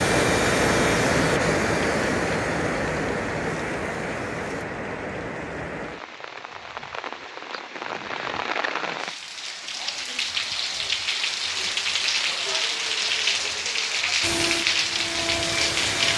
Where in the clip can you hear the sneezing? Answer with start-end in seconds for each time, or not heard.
not heard.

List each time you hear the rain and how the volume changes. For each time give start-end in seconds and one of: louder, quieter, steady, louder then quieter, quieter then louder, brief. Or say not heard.
0.0-16.1 quieter then louder.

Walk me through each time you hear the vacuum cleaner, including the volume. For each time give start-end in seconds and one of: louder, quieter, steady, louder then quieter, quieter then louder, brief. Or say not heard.
0.0-4.7 quieter
14.2-16.1 brief.